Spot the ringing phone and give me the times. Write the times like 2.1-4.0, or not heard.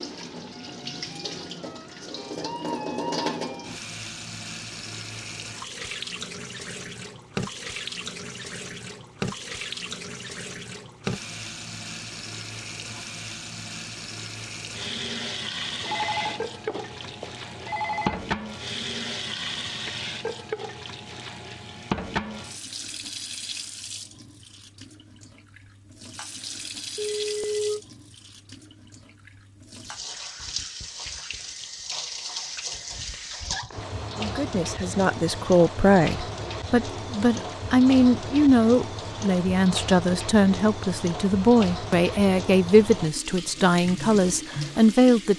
15.8-18.2, 26.9-27.8.